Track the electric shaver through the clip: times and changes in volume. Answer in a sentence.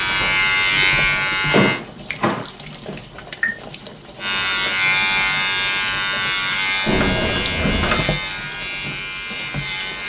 The electric shaver can be heard briefly from 0.0 to 1.8 s; and from 4.2 to 10.0 s, getting quieter.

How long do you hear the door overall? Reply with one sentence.
You can hear the door for 3 seconds altogether.